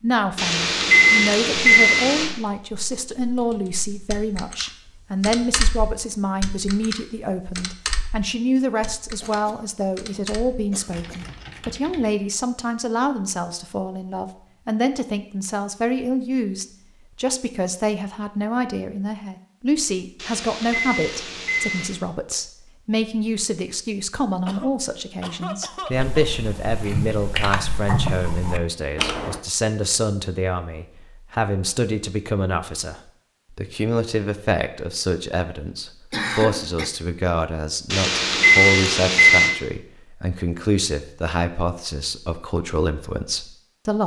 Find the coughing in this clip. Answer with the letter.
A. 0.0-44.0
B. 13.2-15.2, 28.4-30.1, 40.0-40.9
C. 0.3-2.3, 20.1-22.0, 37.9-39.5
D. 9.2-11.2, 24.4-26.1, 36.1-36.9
D.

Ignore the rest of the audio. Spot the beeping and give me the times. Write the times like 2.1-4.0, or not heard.
0.3-2.3, 20.1-22.0, 37.9-39.5.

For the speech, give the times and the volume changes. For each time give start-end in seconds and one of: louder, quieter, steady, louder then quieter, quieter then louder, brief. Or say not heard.
0.0-44.0 steady.